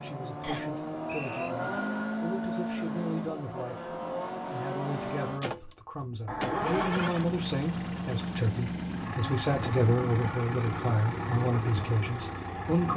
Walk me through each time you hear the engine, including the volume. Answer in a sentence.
The engine can be heard from 0.0 to 12.9 s, at a steady volume.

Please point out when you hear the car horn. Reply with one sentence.
You can hear the car horn from 6.2 to 7.0 s.